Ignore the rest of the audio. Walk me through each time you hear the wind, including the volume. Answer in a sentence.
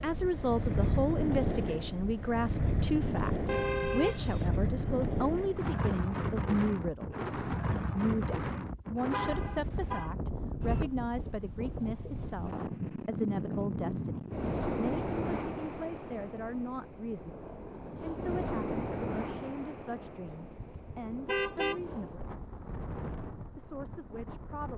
You can hear the wind from 0.0 to 24.7 s, getting quieter.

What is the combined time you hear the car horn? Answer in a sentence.
You can hear the car horn for 3 seconds altogether.